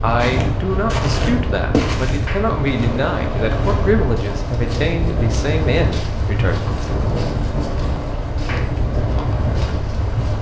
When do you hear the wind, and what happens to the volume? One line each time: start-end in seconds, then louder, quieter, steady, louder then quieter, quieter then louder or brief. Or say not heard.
0.0-10.3 steady.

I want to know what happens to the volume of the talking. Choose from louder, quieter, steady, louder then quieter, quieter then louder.
steady.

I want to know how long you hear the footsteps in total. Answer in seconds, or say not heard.
10 s.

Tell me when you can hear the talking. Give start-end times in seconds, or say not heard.
0.0-6.9.